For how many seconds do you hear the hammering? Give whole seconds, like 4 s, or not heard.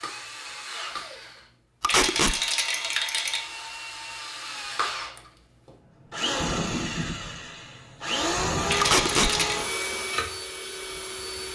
not heard.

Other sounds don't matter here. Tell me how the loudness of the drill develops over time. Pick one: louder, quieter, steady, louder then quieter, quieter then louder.
louder.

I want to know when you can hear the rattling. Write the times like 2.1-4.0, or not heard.
1.9-3.4, 8.7-9.6.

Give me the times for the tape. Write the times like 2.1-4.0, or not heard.
1.8-2.4, 8.8-9.3.